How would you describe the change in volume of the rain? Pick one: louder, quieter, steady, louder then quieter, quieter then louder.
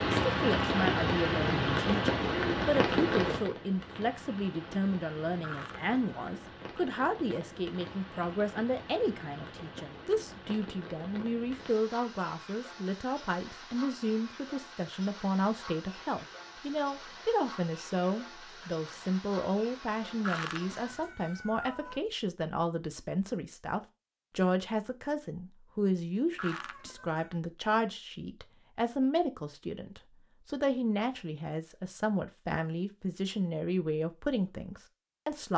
quieter.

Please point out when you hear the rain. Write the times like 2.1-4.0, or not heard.
0.0-21.1.